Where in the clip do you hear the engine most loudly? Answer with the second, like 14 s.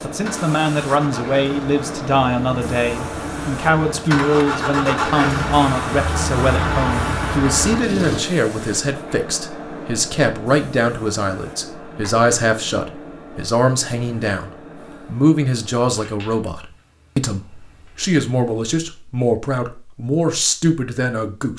5 s.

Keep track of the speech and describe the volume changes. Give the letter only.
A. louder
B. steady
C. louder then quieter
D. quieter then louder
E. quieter
B.